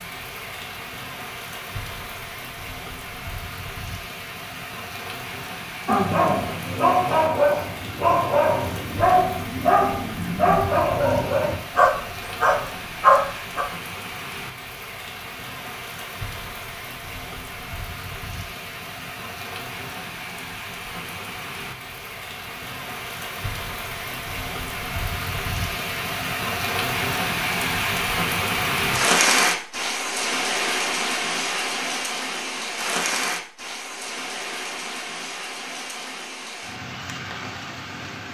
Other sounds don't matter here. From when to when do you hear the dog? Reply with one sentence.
The dog can be heard from 5.8 to 13.7 s.